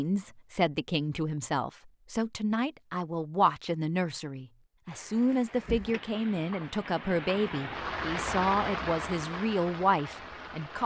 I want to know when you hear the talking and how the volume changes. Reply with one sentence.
The talking can be heard from 0.0 to 10.8 s, at a steady volume.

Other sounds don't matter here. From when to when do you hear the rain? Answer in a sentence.
The rain can be heard from 4.9 to 10.8 s.